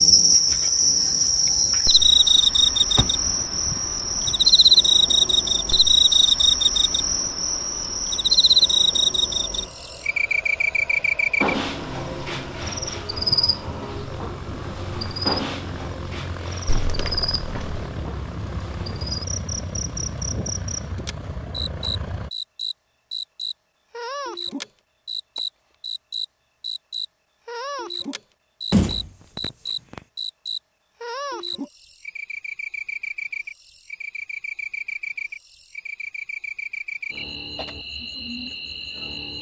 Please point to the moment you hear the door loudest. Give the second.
29 s.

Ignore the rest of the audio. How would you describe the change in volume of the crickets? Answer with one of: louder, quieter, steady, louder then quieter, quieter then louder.
quieter.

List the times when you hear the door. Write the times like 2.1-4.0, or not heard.
3.0-4.3, 16.6-17.9, 28.7-30.0.